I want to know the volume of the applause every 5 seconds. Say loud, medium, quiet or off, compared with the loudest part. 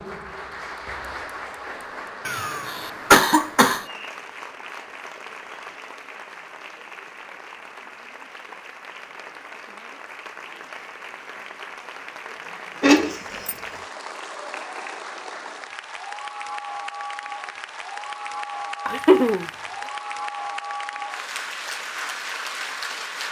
medium, medium, medium, loud, loud.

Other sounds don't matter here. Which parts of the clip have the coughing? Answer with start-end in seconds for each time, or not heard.
2.2-3.9, 12.8-13.6, 18.9-19.4.